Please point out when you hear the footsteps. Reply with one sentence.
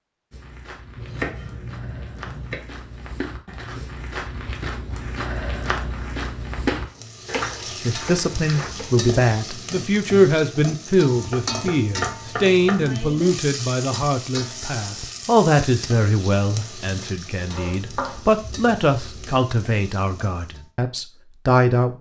The footsteps can be heard from 0.3 to 8.7 s.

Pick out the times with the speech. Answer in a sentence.
You can hear the speech from 7.8 to 21.9 s.